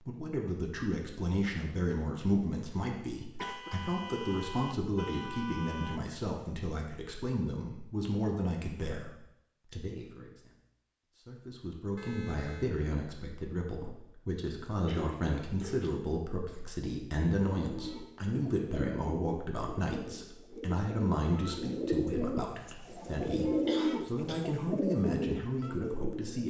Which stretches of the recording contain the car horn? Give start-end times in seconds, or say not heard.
3.4-6.0, 11.9-12.8, 22.8-23.8.